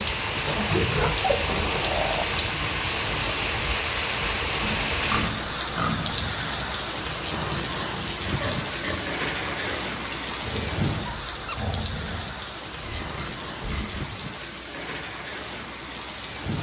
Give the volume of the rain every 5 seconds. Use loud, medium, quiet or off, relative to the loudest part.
loud, loud, medium, medium.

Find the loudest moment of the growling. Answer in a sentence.
The volume of the growling peaks at 2 seconds.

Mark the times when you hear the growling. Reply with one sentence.
The growling can be heard from 1.4 to 2.5 s and from 10.4 to 12.3 s.